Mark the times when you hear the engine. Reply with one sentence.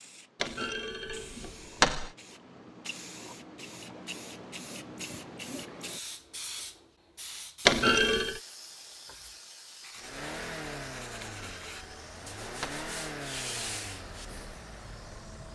The engine can be heard from 9.9 to 15.5 s.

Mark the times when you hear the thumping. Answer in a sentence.
The thumping can be heard from 0.4 to 2.1 s, from 7.7 to 8.4 s and from 11.2 to 12.8 s.